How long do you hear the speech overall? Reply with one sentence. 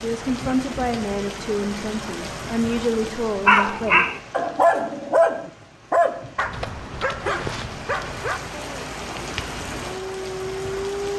You can hear the speech for 4 seconds altogether.